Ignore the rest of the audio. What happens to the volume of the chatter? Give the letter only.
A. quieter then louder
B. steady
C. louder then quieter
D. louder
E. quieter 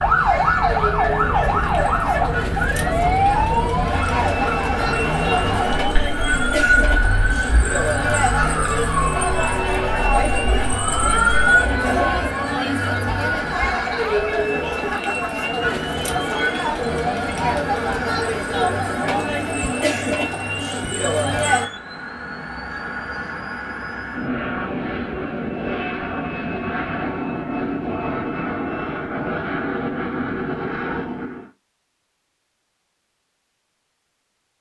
B.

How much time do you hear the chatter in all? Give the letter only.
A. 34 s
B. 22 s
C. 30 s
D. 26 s
B.